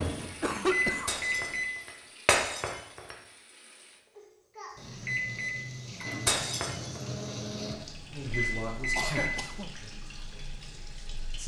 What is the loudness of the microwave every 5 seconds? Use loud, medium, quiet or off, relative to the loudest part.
loud, loud, off.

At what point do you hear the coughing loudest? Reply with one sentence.
The loudest moment of the coughing is at 1 second.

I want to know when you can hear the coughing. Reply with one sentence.
You can hear the coughing from 0.2 to 1.4 s and from 8.9 to 9.8 s.